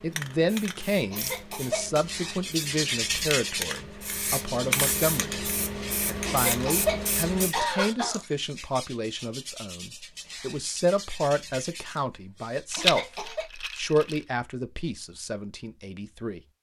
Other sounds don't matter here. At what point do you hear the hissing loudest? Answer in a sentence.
The volume of the hissing peaks at 5 seconds.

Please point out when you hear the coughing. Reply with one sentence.
You can hear the coughing from 1.1 to 2.0 s, from 6.2 to 8.2 s and from 12.8 to 13.4 s.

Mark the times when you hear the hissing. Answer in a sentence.
The hissing can be heard from 0.0 to 7.5 s.